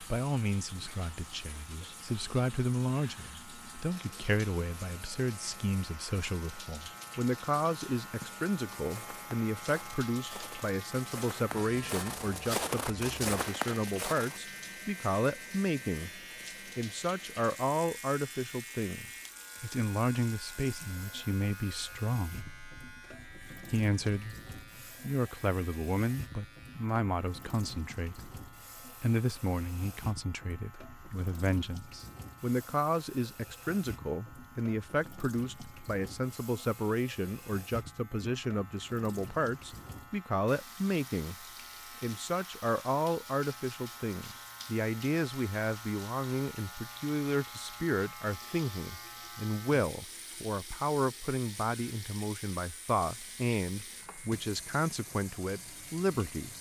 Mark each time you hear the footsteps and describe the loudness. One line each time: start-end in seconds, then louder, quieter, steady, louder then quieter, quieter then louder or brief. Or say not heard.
8.2-14.4 louder.